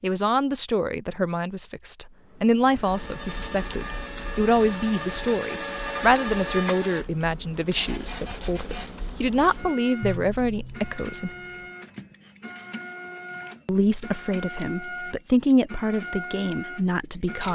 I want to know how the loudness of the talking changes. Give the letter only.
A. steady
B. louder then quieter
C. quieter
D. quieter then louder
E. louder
A.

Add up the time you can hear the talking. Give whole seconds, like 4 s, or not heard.
15 s.